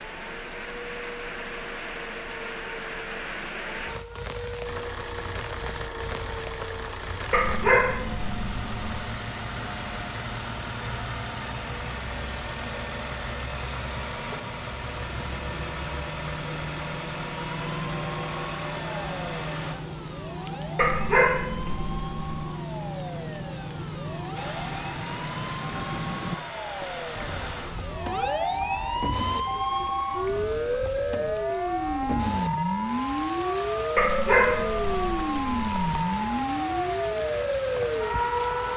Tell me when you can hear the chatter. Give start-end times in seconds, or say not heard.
not heard.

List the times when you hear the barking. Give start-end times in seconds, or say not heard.
7.3-9.1, 20.8-22.4, 34.0-35.7.